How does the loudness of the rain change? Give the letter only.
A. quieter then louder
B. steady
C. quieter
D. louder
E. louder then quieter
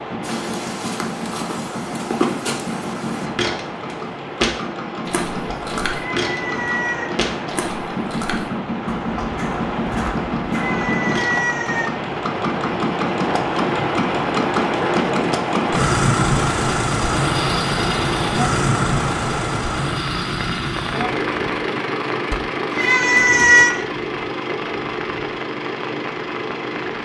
E.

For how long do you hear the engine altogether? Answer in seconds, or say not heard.
27 s.